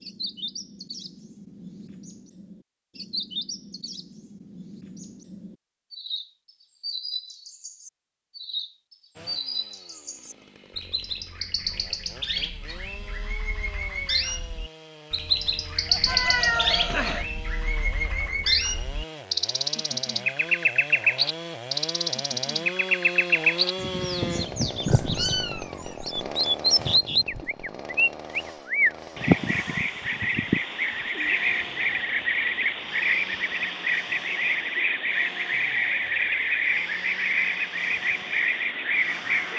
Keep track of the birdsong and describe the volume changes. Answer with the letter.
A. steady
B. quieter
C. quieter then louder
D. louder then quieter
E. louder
E.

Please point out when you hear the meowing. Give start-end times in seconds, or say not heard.
16.1-17.2, 24.9-26.1.